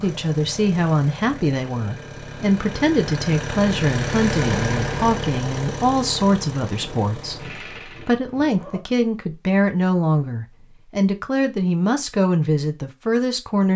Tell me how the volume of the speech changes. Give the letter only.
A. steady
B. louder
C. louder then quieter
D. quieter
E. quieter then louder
A.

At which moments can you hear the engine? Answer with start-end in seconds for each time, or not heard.
0.0-8.2.